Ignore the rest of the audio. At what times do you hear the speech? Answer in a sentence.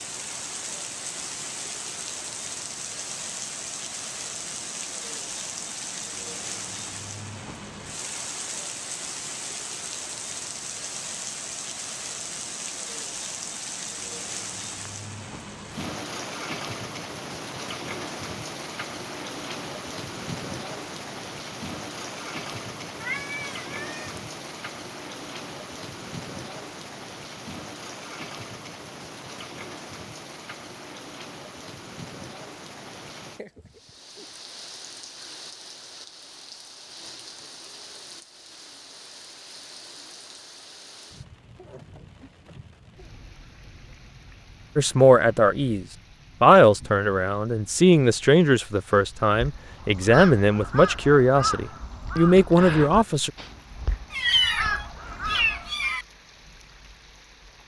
You can hear the speech from 44.8 to 53.3 s.